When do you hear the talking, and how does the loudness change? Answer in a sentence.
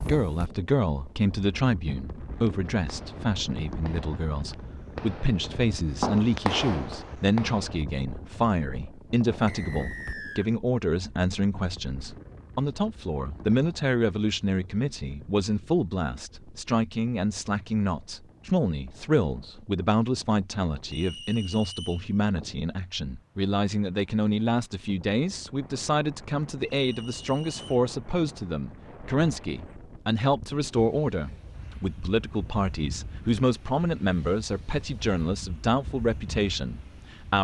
The talking can be heard from 0.0 to 37.4 s, at a steady volume.